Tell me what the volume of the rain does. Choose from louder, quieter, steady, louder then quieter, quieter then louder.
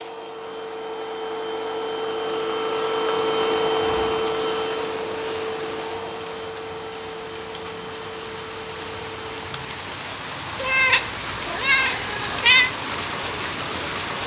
louder.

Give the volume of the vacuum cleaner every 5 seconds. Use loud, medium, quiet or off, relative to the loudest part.
loud, medium, off.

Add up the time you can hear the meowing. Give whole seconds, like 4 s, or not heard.
2 s.